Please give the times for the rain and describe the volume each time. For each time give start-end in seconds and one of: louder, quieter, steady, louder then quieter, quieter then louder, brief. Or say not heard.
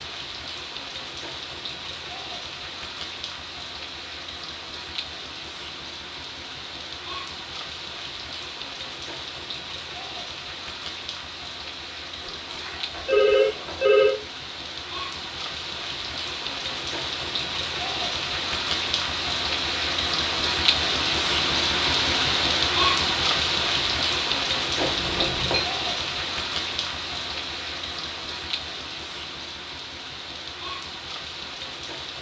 0.0-32.1 louder then quieter.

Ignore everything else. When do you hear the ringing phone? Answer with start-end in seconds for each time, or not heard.
12.2-14.2, 24.8-25.6.